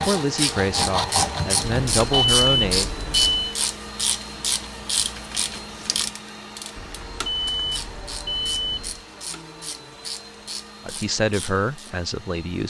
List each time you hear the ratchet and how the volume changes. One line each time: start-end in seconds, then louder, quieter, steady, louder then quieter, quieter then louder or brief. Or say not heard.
0.0-11.9 quieter.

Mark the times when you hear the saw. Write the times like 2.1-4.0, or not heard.
0.0-2.5.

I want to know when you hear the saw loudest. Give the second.
1 s.